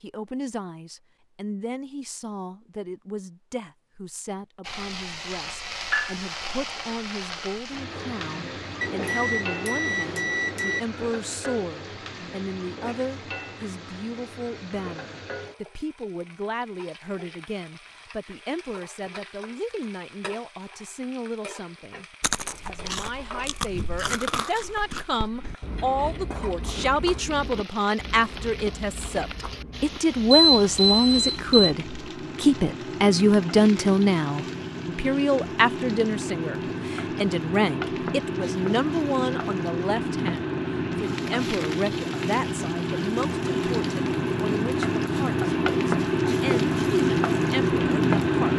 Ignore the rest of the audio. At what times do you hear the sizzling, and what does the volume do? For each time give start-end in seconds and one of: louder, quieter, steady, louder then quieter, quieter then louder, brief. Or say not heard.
4.6-48.5 quieter then louder.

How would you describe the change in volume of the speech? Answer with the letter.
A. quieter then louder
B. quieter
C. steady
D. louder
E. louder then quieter
E.